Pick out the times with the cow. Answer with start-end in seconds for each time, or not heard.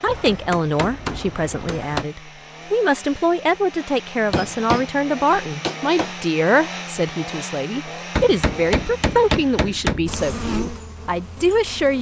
not heard.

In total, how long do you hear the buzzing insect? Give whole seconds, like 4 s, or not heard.
2 s.